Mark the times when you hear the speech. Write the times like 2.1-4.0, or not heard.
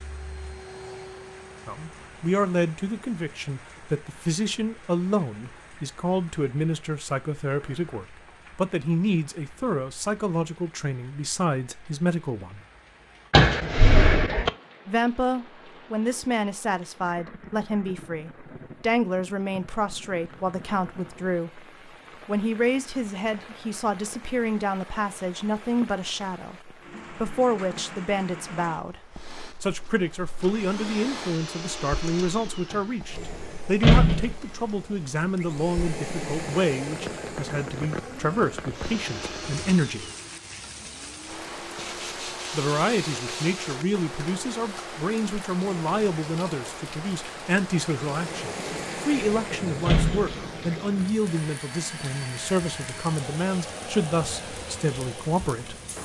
1.6-12.6, 14.8-21.6, 22.2-29.0, 29.6-40.0, 42.5-55.8.